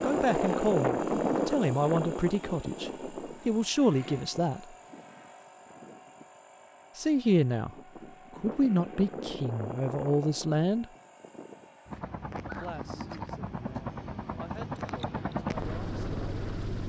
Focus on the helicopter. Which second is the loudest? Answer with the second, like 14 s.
1 s.